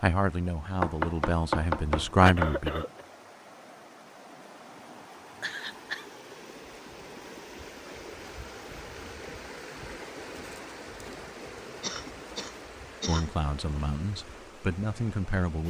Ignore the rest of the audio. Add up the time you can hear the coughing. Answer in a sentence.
The coughing can be heard for 3 seconds in total.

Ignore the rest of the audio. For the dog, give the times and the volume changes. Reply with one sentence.
The dog can't be heard in this clip.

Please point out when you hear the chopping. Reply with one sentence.
The chopping can be heard from 0.8 to 2.6 s.